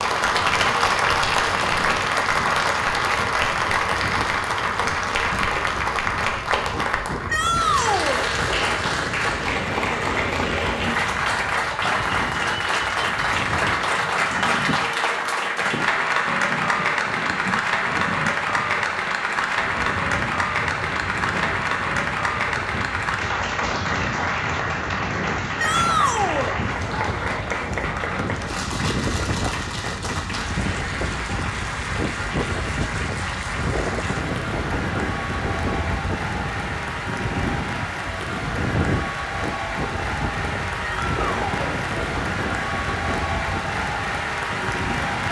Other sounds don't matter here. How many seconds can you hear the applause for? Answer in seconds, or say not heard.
45 s.